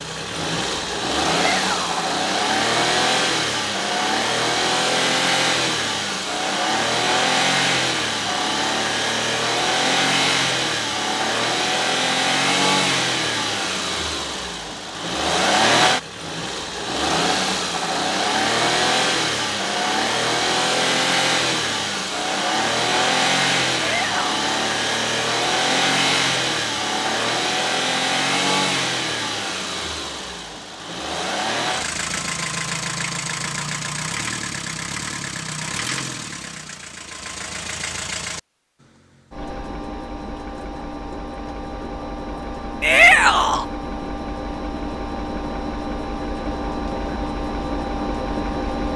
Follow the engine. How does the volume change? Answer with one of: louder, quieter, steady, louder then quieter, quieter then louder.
quieter.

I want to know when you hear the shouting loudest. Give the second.
43 s.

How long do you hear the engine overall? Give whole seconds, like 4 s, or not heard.
49 s.